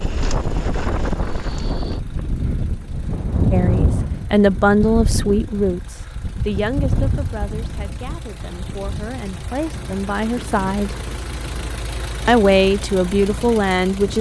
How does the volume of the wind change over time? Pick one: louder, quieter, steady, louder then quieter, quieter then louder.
quieter.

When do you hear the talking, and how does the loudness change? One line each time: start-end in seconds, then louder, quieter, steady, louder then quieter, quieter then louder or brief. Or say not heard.
3.5-10.9 quieter then louder
12.2-14.1 brief.